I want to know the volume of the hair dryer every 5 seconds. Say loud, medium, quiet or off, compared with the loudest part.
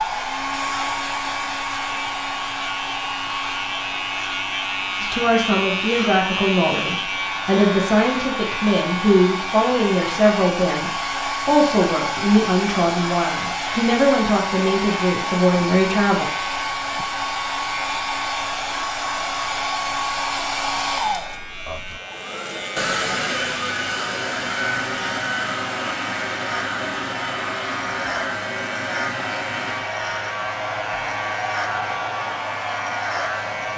loud, medium, loud, loud, loud, loud, loud.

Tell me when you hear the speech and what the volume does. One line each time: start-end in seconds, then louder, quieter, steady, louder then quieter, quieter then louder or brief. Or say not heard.
5.0-16.6 steady.